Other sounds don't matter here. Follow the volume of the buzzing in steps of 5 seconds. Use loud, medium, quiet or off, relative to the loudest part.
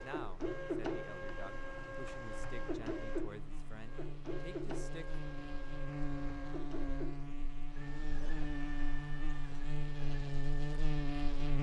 quiet, medium, loud.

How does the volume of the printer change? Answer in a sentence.
The loudness of the printer goes down.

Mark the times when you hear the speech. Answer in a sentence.
The speech can be heard from 0.0 to 5.2 s.